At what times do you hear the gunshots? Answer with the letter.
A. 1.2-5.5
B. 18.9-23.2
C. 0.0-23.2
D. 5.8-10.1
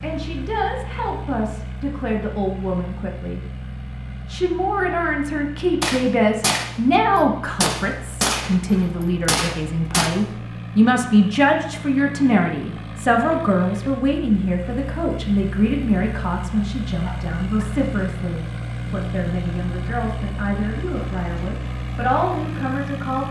D.